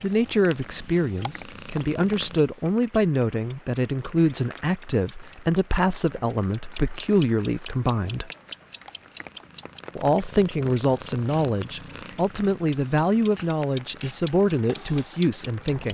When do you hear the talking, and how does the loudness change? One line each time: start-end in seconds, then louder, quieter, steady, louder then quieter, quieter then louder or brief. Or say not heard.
0.0-8.3 steady
9.9-15.8 steady.